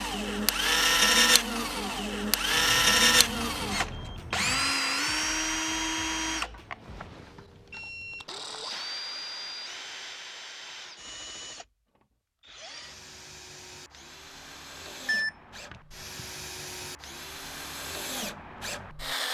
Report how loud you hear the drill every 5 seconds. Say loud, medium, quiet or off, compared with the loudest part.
loud, medium, quiet, quiet.